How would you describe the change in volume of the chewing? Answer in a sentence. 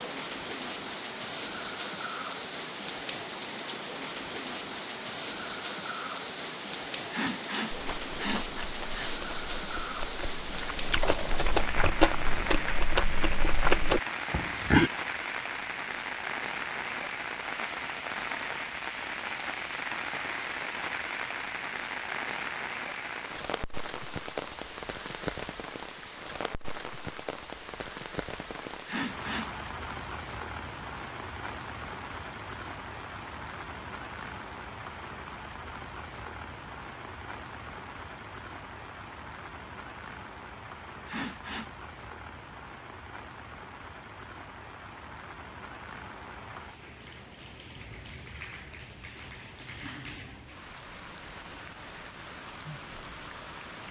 The loudness of the chewing goes up.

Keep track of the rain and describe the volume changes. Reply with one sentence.
The loudness of the rain goes down.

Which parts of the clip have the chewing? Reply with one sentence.
You can hear the chewing from 7.7 to 14.9 s.